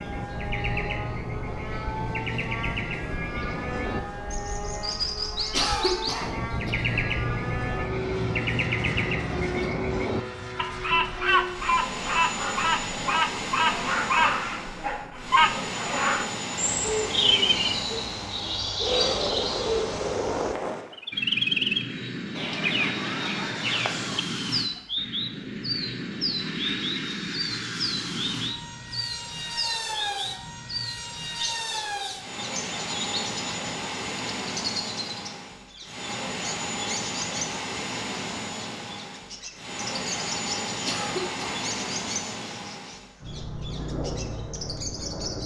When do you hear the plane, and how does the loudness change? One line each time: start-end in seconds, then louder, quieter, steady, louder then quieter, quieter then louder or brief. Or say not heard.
0.0-45.4 steady.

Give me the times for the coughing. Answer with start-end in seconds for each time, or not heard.
5.5-6.7, 40.8-41.6.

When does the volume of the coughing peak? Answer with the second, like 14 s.
6 s.